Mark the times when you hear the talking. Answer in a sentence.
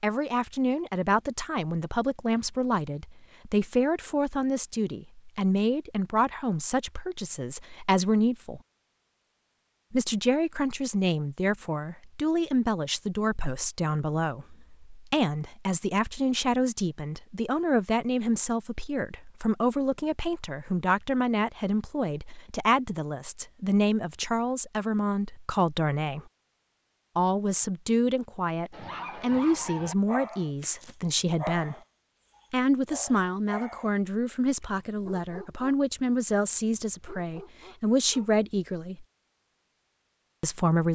The talking can be heard from 0.0 to 8.6 s, from 9.9 to 26.2 s, from 27.1 to 31.8 s, from 32.5 to 39.0 s and from 40.4 to 40.9 s.